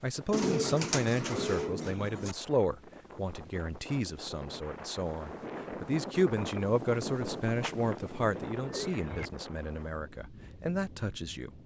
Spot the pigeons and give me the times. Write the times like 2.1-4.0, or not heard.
0.3-2.4, 7.6-9.3.